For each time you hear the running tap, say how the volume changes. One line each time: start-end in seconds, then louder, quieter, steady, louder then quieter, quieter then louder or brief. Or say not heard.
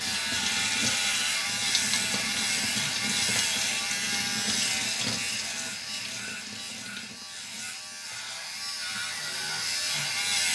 0.0-10.5 quieter.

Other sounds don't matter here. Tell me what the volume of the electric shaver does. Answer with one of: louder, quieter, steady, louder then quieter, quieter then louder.
quieter then louder.